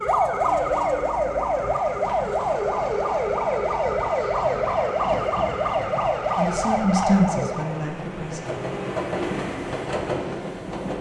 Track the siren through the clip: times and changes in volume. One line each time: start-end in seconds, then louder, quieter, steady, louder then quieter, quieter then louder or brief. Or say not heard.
0.0-7.9 steady.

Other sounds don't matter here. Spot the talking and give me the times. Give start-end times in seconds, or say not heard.
6.3-8.4.